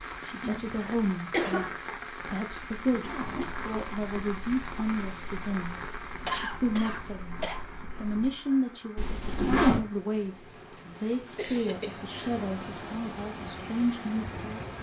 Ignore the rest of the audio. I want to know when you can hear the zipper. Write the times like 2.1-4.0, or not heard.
2.8-3.5, 8.9-9.8.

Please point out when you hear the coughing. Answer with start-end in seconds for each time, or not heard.
0.4-1.7, 6.2-7.6, 11.0-12.2.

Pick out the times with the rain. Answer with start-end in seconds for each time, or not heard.
0.0-14.7.